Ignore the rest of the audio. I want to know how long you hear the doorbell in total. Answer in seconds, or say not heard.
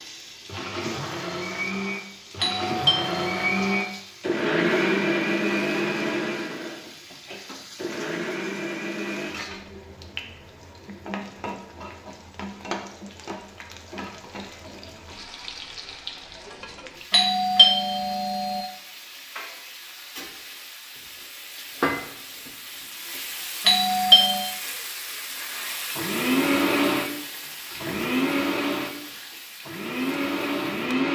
4 s.